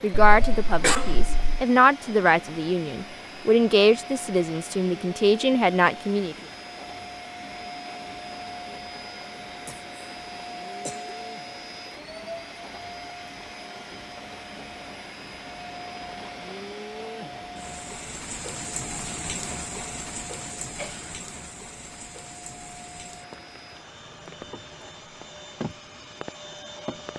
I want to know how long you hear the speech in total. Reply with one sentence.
The speech can be heard for 6 seconds in total.